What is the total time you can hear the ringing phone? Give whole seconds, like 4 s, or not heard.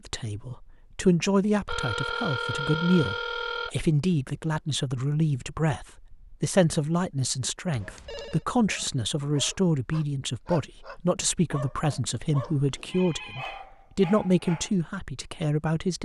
4 s.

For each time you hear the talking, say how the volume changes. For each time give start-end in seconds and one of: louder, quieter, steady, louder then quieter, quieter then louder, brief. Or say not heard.
0.1-16.0 steady.